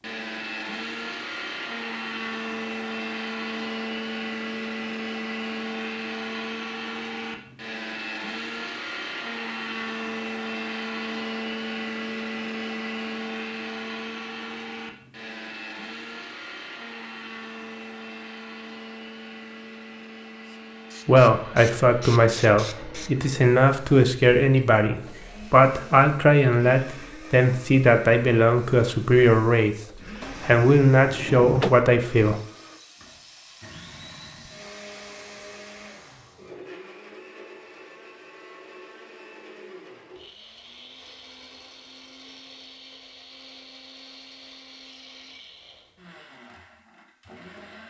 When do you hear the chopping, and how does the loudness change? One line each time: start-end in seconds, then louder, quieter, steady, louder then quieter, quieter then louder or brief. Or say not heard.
not heard.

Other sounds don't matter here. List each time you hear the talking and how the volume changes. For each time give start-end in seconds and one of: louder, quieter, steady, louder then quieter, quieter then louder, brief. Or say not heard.
21.1-29.8 steady
30.4-32.4 brief.